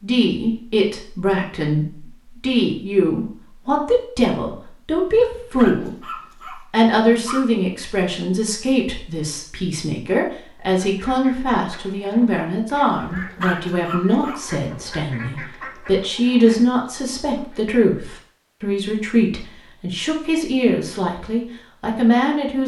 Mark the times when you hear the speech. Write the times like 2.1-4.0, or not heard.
0.0-6.0, 6.7-22.6.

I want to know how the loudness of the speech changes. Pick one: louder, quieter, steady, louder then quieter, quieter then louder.
steady.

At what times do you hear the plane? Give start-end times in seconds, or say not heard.
not heard.